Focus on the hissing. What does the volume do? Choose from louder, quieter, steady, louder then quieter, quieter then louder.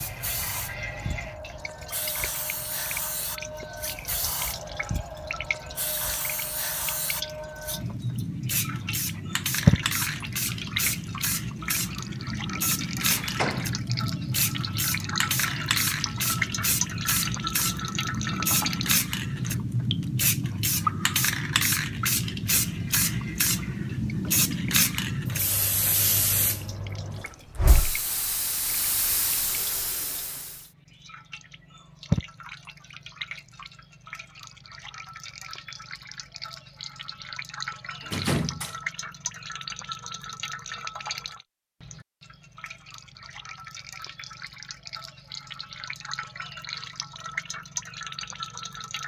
louder.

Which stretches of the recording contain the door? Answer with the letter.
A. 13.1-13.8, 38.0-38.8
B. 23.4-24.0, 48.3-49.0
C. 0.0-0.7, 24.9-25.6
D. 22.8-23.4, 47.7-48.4
A.